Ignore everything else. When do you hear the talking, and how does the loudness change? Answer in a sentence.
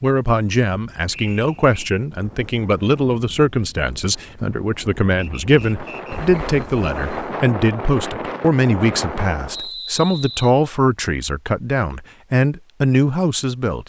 You can hear the talking from 0.0 to 13.8 s, at a steady volume.